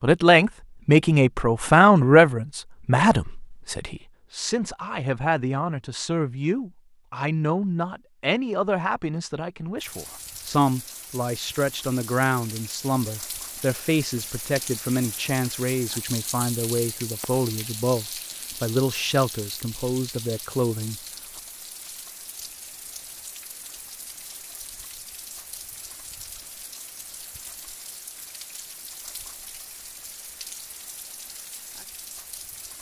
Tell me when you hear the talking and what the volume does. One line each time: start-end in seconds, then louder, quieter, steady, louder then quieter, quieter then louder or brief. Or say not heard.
0.0-21.0 quieter.